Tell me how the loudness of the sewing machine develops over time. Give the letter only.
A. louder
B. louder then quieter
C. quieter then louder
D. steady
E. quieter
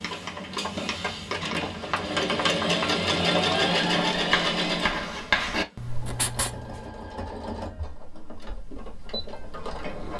B.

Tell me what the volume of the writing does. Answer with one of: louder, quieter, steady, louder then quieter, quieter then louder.
louder then quieter.